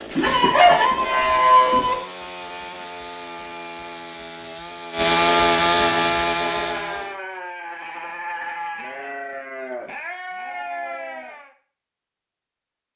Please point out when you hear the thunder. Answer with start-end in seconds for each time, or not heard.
not heard.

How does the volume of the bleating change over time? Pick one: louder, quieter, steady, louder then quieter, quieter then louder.
steady.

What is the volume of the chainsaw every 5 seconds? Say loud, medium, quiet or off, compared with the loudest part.
quiet, loud, off.